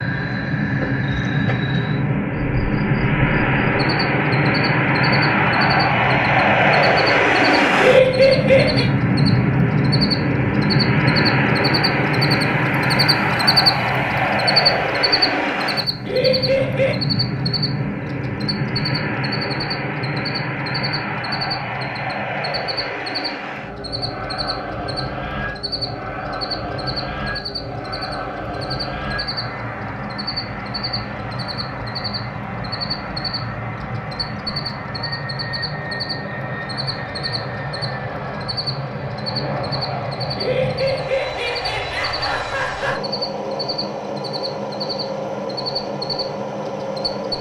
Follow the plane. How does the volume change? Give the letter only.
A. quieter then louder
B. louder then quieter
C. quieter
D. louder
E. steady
C.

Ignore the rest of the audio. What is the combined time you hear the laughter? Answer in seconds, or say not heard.
5 s.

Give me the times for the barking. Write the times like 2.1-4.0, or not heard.
not heard.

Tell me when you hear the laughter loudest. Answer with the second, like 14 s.
8 s.